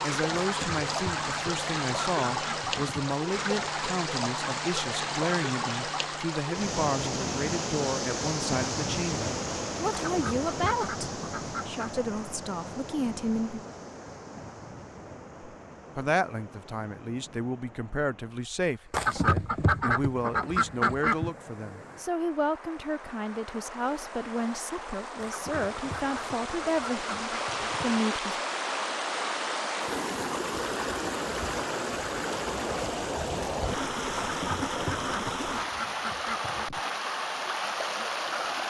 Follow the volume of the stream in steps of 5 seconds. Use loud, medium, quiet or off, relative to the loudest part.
loud, loud, medium, quiet, quiet, loud, loud, loud.